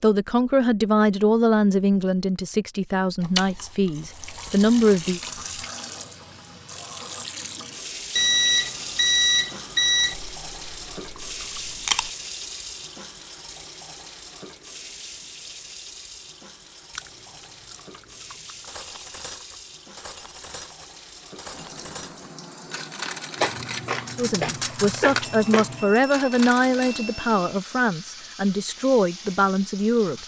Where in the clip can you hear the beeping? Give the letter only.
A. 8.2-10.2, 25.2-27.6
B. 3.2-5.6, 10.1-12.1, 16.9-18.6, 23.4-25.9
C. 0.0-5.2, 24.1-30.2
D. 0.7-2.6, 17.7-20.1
A.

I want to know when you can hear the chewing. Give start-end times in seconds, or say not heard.
3.2-5.6, 10.1-12.1, 16.9-18.6, 23.4-25.9.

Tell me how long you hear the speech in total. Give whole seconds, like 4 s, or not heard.
11 s.